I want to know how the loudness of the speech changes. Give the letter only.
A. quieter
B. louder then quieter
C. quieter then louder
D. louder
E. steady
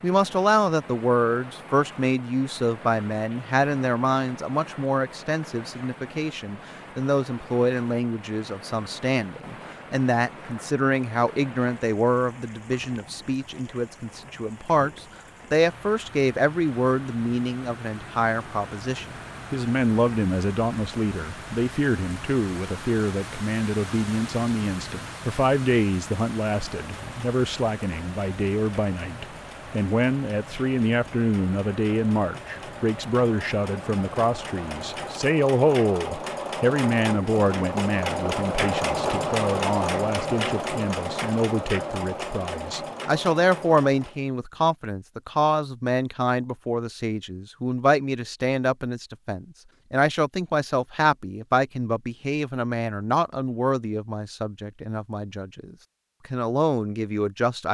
E.